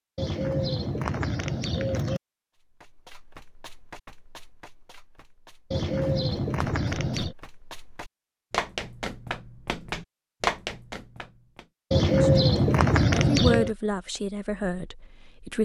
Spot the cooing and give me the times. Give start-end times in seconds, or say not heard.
0.1-2.2, 5.7-7.3, 11.9-13.8.